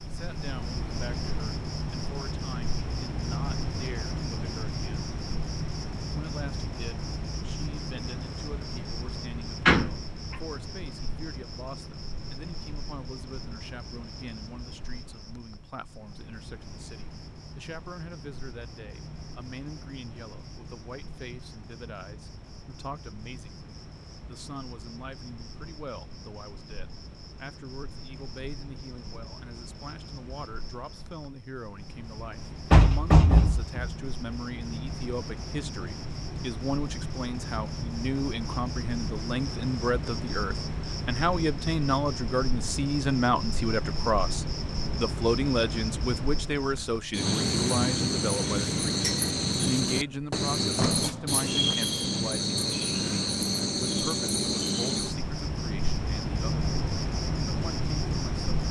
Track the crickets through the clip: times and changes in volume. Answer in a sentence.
You can hear the crickets from 0.0 to 58.6 s, getting quieter then louder.